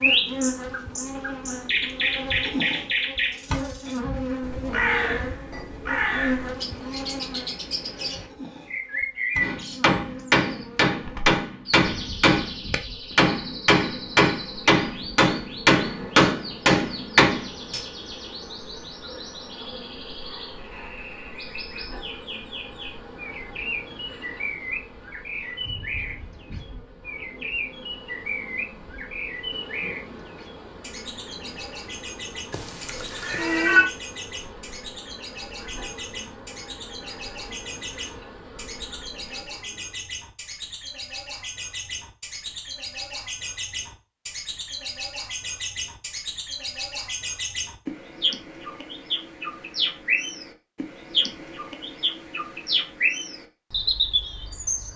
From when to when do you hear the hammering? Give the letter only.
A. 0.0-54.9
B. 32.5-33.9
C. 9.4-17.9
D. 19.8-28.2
C.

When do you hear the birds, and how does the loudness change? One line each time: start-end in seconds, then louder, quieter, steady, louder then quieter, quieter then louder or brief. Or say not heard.
0.0-54.9 quieter then louder.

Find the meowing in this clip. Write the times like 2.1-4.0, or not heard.
32.5-33.9.